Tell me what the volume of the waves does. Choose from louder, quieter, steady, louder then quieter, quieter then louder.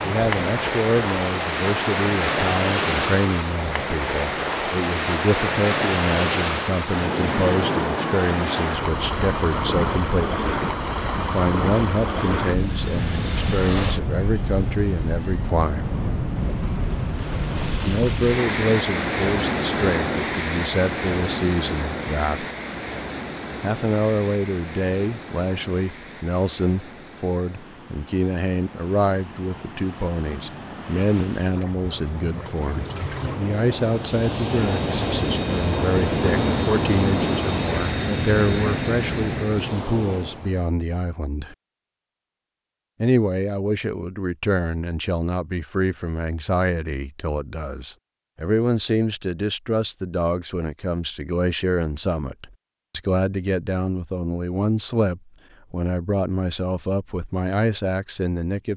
quieter then louder.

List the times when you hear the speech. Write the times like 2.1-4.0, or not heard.
0.0-10.4, 11.2-15.9, 17.7-22.4, 23.6-41.5, 43.0-58.7.